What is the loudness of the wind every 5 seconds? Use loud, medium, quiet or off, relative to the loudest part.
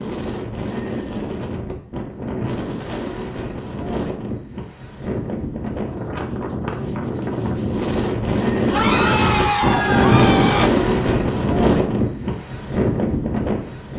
medium, loud, loud.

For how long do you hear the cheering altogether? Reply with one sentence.
The cheering can be heard for 2 seconds in total.